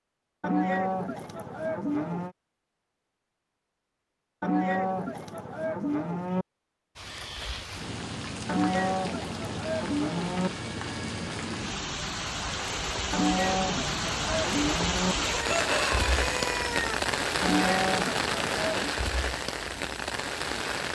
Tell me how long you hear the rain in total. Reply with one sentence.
You can hear the rain for 14 seconds altogether.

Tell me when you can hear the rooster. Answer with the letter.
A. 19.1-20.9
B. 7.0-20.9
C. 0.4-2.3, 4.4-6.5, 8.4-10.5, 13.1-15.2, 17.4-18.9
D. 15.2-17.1
D.